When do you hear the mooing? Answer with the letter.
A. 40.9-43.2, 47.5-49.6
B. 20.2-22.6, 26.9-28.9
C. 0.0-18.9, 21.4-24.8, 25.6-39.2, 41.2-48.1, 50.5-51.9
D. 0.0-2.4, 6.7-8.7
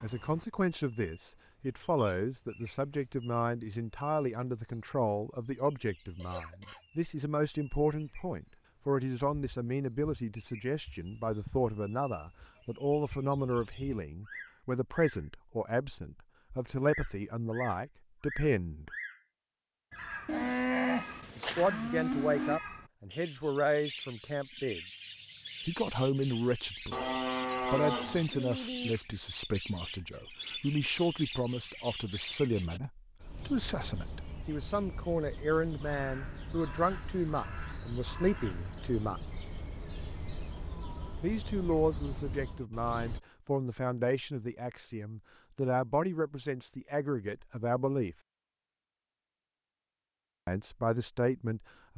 B.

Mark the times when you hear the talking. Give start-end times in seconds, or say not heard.
0.0-18.9, 21.4-24.8, 25.6-39.2, 41.2-48.1, 50.5-51.9.